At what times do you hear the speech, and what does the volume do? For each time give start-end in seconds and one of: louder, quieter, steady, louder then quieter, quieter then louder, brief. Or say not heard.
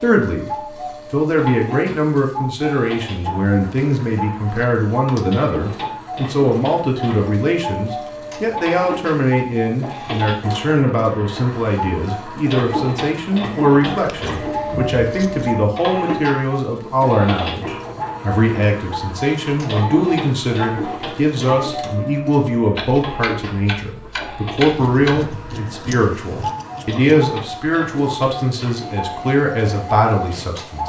0.0-30.8 steady.